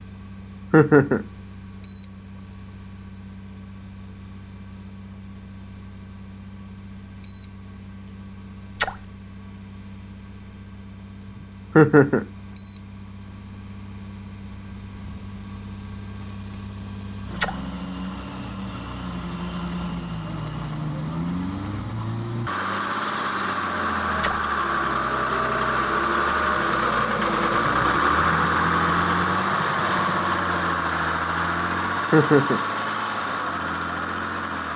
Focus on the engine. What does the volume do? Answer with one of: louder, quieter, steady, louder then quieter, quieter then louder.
louder.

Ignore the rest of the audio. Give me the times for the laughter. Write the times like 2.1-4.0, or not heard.
0.7-1.2, 11.8-12.2, 32.1-32.6.